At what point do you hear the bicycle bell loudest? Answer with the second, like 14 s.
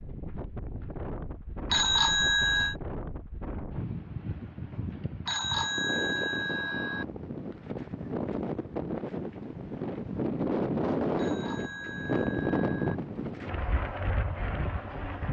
2 s.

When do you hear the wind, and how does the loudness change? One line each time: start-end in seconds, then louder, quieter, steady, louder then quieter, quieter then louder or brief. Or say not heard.
0.0-15.2 louder.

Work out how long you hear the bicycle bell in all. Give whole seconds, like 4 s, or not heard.
5 s.